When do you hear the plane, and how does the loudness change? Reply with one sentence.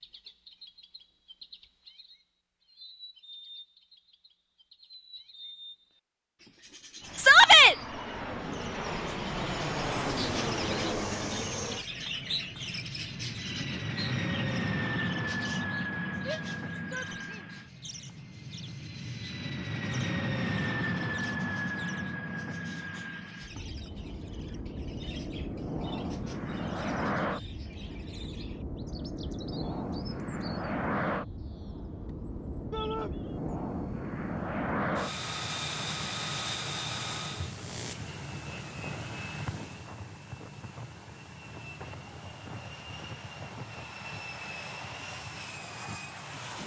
The plane can be heard from 7.0 to 46.6 s, getting quieter.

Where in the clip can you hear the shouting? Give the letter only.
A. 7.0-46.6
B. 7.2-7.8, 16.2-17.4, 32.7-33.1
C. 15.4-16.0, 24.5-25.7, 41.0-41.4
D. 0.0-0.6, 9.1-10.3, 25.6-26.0
B.